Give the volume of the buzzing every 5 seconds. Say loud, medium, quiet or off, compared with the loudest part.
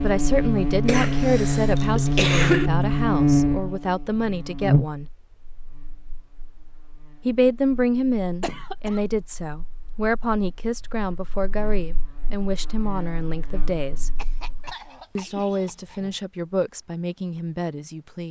loud, quiet, quiet, off.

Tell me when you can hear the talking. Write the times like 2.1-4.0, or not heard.
0.0-5.1, 7.2-14.1, 15.2-18.2.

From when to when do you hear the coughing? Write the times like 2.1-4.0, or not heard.
0.8-2.7, 8.4-9.0, 14.2-16.2.